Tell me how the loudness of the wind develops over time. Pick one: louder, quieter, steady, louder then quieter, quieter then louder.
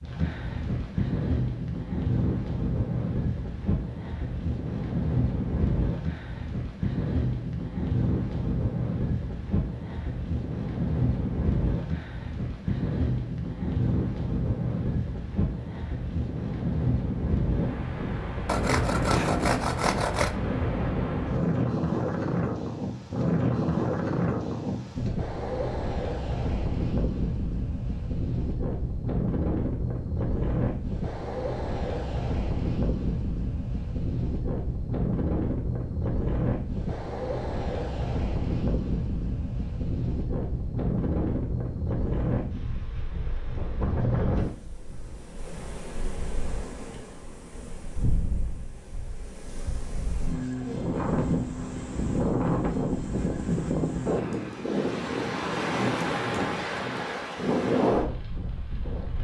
steady.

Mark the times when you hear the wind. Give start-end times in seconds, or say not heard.
0.0-59.1.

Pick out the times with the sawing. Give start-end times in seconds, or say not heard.
18.4-20.4.